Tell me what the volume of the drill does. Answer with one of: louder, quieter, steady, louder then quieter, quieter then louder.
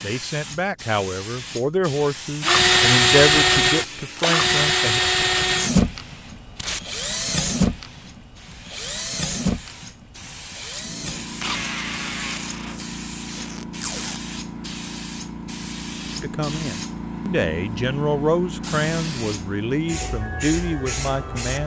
quieter.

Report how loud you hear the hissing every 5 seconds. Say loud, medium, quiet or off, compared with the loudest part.
medium, quiet, loud, loud, loud.